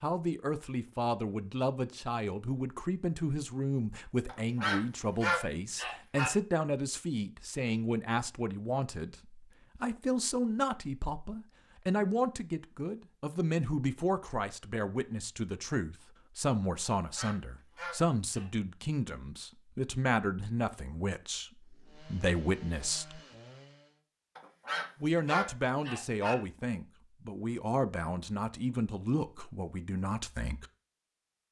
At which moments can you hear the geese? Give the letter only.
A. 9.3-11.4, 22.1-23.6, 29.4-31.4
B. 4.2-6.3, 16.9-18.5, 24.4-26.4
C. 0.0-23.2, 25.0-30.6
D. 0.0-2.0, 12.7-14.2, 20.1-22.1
B.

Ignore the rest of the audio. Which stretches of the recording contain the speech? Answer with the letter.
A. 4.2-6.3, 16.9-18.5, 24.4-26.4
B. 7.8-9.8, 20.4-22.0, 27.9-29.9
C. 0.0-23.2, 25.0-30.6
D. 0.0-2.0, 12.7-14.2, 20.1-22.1
C.